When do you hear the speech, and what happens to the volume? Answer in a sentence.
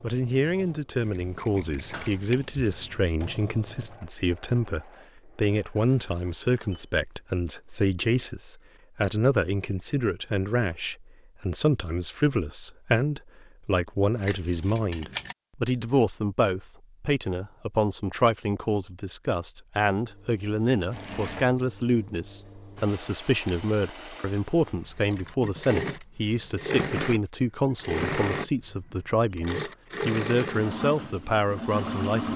The speech can be heard from 0.0 to 32.3 s, at a steady volume.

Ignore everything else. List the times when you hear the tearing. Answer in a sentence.
You can't hear the tearing here.